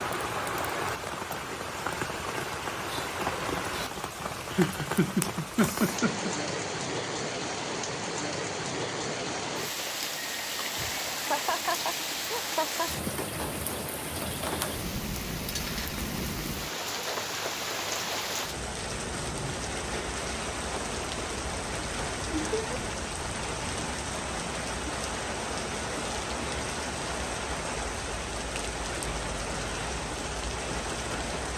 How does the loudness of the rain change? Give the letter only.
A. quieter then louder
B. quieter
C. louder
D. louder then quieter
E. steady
E.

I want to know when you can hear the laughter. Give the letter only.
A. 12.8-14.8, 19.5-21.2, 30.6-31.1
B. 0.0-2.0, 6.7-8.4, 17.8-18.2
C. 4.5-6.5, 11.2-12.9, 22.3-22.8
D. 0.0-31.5
C.